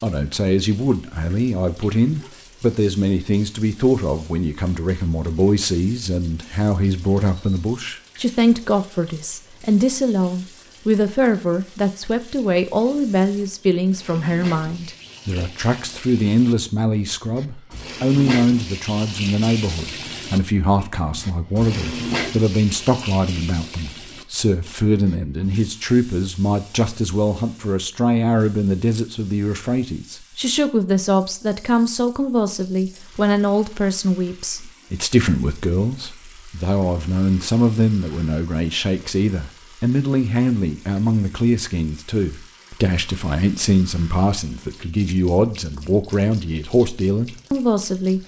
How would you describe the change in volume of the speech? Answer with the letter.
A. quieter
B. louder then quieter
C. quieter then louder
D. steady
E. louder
D.